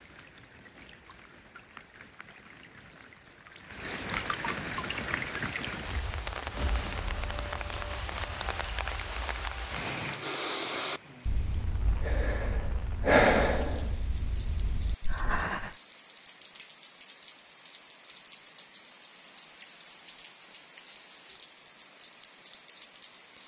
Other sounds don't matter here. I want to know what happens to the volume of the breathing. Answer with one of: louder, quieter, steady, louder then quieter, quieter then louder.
louder then quieter.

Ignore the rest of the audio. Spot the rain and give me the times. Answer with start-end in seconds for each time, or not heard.
0.0-23.4.